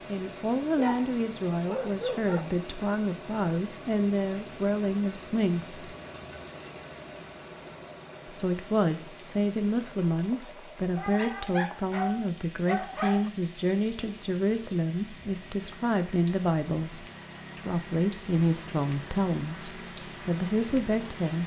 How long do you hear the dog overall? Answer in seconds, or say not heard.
4 s.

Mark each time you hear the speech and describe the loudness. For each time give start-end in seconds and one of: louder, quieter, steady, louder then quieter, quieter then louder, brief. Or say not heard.
0.1-5.8 steady
8.2-21.4 steady.